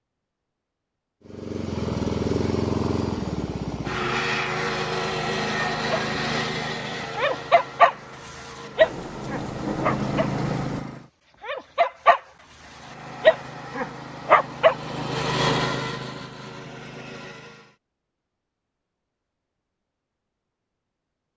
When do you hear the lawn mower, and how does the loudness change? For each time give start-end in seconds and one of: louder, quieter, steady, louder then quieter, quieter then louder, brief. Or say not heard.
1.2-11.1 quieter then louder
12.5-17.8 louder then quieter.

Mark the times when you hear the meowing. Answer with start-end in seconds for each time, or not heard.
not heard.